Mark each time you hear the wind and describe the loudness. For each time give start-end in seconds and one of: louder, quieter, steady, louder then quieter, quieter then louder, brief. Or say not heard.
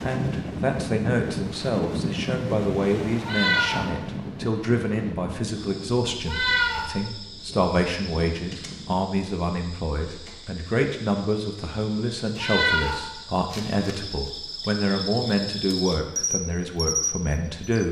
0.0-9.1 quieter.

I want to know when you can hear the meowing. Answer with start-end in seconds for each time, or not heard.
3.2-3.9, 6.2-6.8, 12.4-13.0.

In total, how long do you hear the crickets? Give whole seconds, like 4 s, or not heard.
12 s.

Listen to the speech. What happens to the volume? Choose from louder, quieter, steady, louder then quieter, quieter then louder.
steady.